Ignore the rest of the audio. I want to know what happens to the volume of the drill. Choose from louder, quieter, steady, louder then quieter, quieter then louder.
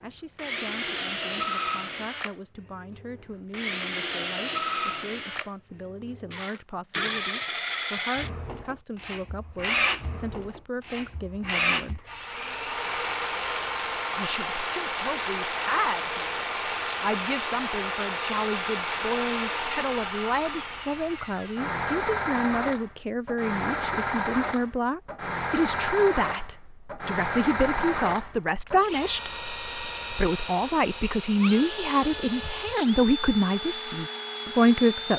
steady.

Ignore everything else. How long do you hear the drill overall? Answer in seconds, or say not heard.
35 s.